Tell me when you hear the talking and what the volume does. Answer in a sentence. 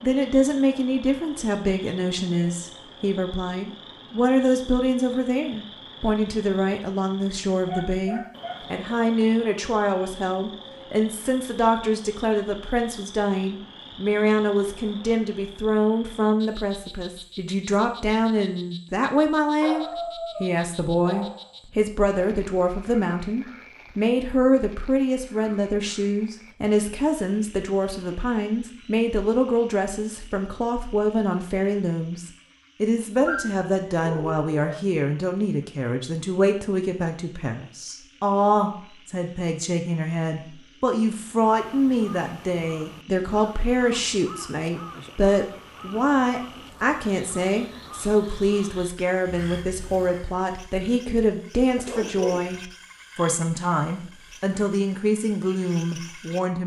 You can hear the talking from 0.0 to 56.6 s, at a steady volume.